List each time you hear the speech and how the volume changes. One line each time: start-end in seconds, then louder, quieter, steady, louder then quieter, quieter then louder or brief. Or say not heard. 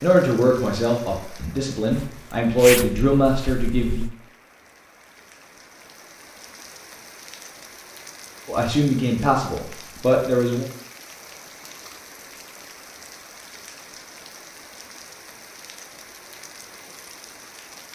0.0-4.0 quieter then louder
8.4-10.7 brief.